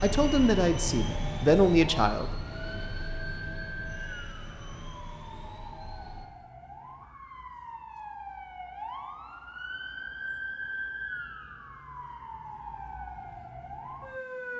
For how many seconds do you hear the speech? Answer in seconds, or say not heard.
2 s.